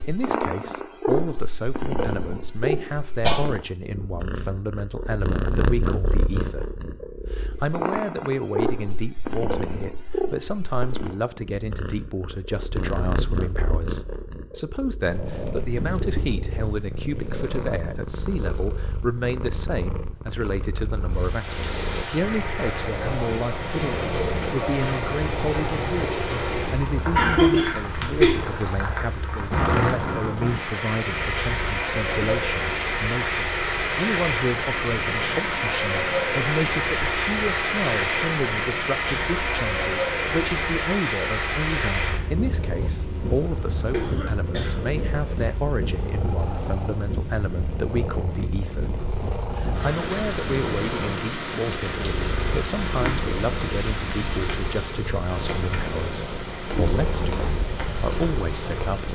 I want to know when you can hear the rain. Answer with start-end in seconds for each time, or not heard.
21.1-59.1.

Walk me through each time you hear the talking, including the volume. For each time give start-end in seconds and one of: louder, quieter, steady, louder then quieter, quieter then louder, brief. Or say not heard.
0.1-59.1 steady.